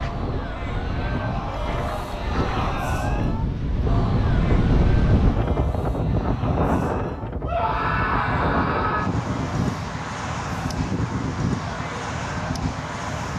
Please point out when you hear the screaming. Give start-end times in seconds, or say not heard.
7.5-9.1.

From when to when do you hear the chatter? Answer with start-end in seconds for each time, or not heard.
0.0-13.2.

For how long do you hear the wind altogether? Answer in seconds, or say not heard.
13 s.